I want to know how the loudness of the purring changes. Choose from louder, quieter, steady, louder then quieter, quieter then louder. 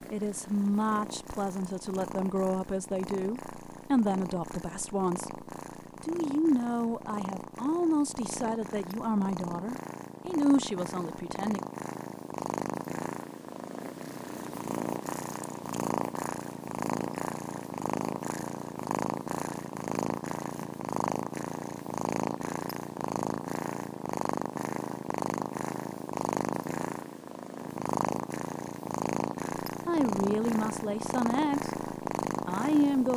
louder.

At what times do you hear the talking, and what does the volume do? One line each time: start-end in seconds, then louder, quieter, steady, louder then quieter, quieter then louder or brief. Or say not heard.
0.1-11.6 steady
29.9-31.7 brief
32.5-33.1 brief.